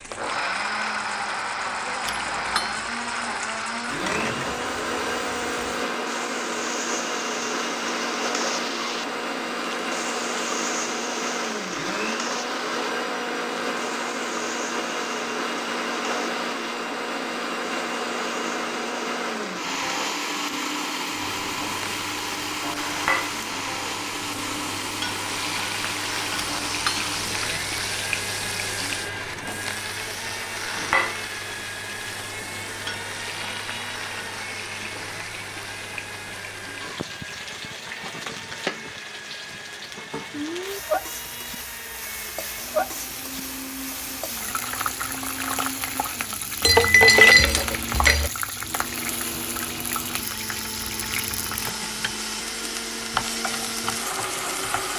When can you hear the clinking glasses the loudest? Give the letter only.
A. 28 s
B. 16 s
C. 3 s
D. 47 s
D.